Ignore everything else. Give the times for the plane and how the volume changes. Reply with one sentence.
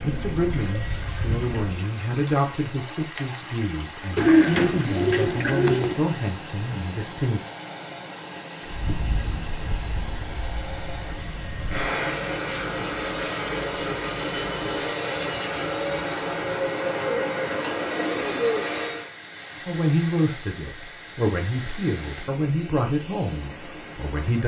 The plane can be heard briefly from 0.0 to 1.9 s; and from 8.6 to 19.1 s, getting louder.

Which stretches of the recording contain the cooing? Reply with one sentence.
You can hear the cooing from 4.2 to 6.0 s and from 17.1 to 18.7 s.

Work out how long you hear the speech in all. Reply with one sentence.
The speech can be heard for 12 seconds in total.